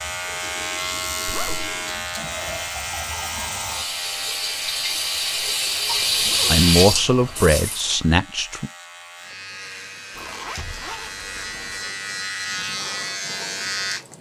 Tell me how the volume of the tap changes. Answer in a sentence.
The volume of the tap goes up.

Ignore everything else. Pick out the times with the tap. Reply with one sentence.
The tap can be heard from 0.0 to 7.8 s.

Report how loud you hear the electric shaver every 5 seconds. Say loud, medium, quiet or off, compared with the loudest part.
loud, medium, loud.